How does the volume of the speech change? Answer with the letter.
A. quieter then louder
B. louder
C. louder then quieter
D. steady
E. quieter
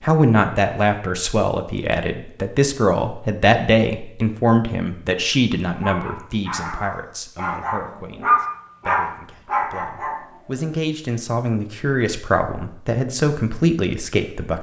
A.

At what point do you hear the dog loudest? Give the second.
8 s.